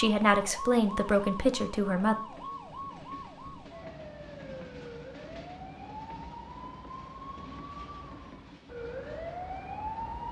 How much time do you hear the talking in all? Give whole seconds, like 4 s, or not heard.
2 s.